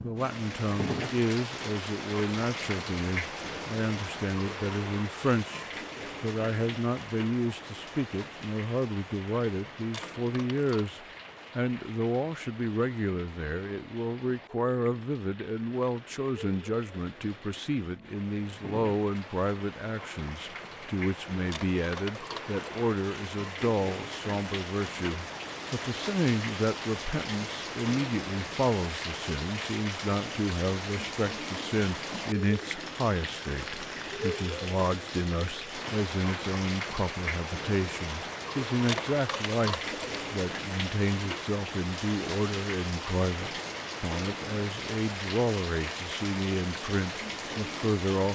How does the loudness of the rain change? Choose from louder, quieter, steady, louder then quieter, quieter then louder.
quieter then louder.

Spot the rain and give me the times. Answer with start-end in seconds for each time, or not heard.
0.0-48.2.